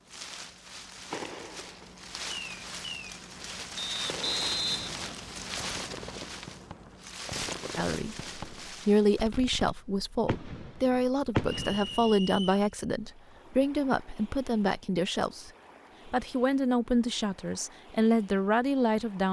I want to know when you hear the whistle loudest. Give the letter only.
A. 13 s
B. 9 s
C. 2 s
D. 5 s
D.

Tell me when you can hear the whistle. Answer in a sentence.
You can hear the whistle from 3.8 to 5.2 s and from 11.6 to 12.7 s.